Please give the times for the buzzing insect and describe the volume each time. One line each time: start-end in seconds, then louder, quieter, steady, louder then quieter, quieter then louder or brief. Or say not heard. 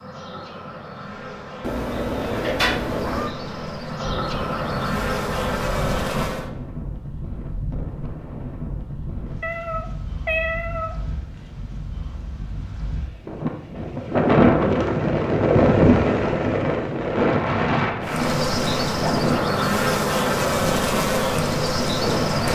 0.0-6.5 louder
18.0-22.5 steady.